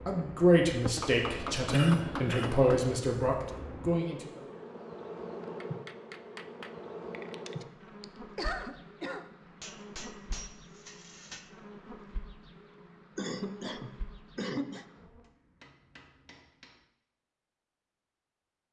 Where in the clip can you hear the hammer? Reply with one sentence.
The hammer can be heard from 0.9 to 3.0 s, from 5.6 to 7.5 s, from 9.6 to 11.5 s and from 15.2 to 16.9 s.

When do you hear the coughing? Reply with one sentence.
You can hear the coughing from 1.7 to 2.6 s, from 7.5 to 9.3 s and from 13.2 to 14.8 s.